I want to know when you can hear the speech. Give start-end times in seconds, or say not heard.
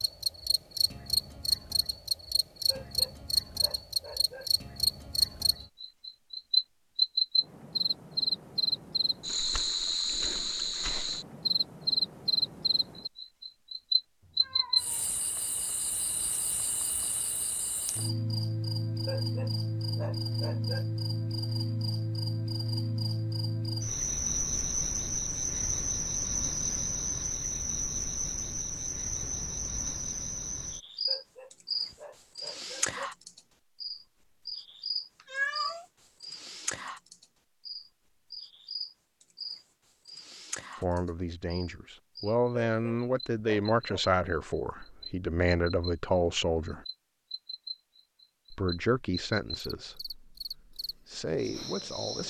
40.8-46.9, 48.5-52.2.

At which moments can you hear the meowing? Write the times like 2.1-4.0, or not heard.
14.2-15.2, 29.2-30.1, 35.2-35.9.